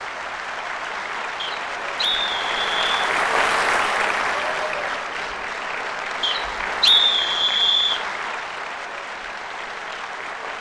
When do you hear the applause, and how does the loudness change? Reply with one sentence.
The applause can be heard from 0.0 to 10.5 s, getting louder then quieter.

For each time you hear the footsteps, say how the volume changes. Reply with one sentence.
You can't hear the footsteps here.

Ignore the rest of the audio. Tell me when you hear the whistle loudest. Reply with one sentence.
The loudest moment of the whistle is at 7 seconds.